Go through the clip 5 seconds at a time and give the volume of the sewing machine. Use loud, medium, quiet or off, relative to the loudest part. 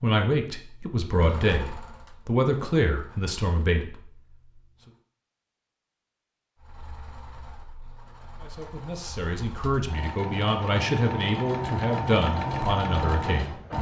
quiet, quiet, loud.